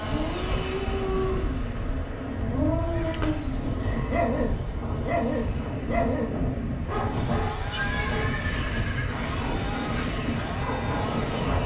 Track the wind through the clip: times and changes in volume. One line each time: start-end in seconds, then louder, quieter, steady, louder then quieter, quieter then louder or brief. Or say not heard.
0.0-11.6 steady.